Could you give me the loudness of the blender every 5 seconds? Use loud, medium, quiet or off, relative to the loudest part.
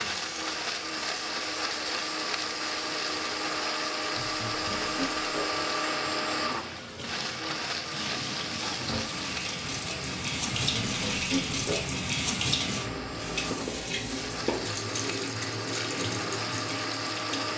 loud, loud, medium, loud.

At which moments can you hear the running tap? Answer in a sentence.
The running tap can be heard from 0.0 to 17.5 s.